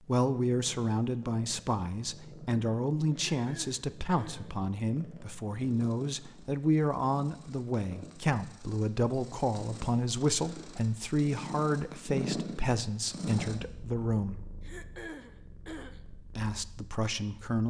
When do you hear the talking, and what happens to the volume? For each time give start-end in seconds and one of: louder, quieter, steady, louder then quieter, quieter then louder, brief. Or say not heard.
0.1-14.4 steady
16.1-17.6 brief.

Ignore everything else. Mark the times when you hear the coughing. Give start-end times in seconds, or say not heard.
3.3-4.5, 14.6-16.0.